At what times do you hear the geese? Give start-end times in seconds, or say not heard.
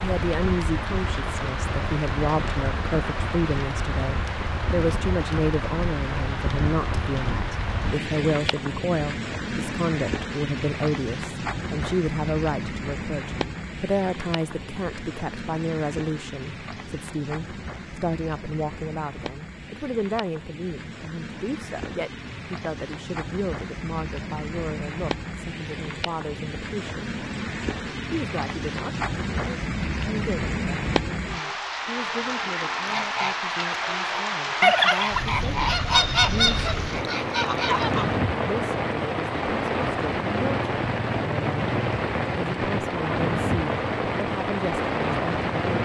32.7-38.1.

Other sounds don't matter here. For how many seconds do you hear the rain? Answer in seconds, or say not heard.
46 s.